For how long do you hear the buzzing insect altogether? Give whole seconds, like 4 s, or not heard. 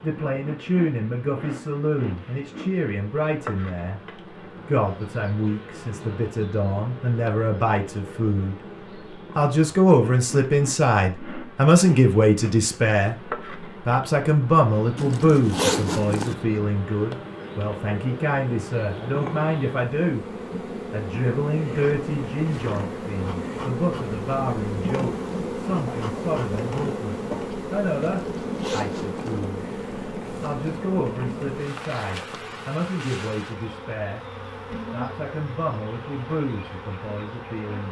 38 s.